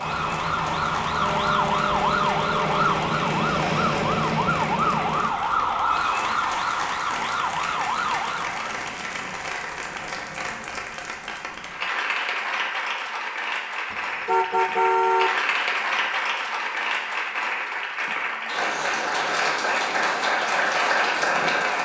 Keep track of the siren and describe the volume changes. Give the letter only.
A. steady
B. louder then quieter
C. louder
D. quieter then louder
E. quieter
A.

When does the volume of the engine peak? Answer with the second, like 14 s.
4 s.